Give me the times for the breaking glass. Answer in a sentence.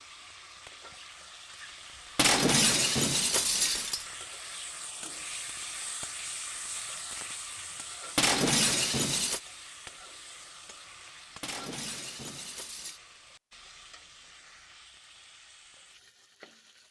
You can hear the breaking glass from 2.1 to 4.0 s, from 8.2 to 9.4 s and from 11.4 to 13.0 s.